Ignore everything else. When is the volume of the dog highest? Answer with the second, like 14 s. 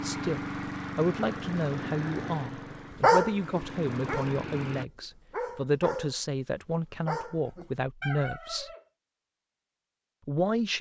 3 s.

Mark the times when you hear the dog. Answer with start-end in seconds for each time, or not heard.
2.7-8.8.